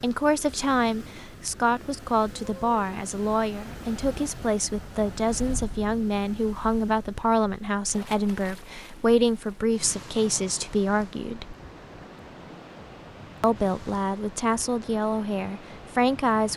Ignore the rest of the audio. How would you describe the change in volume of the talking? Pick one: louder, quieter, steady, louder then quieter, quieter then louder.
steady.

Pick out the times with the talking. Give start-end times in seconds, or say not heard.
0.0-11.6, 13.4-16.5.